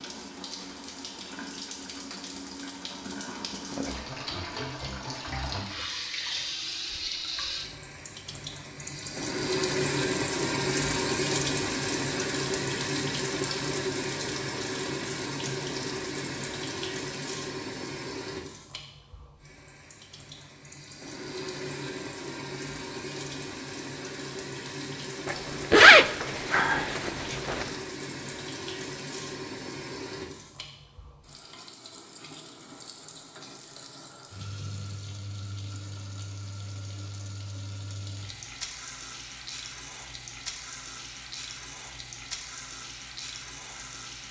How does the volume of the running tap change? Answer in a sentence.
The loudness of the running tap goes up, then down.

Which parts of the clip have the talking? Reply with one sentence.
The talking can't be heard in this clip.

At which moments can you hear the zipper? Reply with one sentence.
The zipper can be heard from 25.2 to 27.6 s.